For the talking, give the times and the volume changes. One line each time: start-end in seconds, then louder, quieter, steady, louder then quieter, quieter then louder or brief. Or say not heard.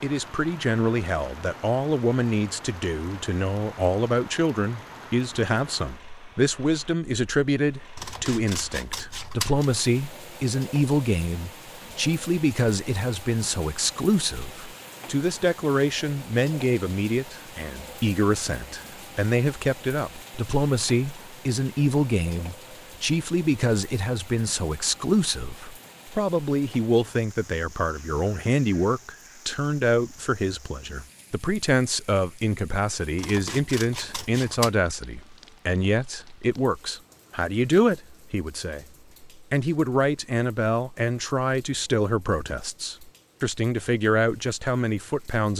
0.0-45.5 steady.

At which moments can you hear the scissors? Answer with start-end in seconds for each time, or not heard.
8.0-9.7, 33.1-34.7.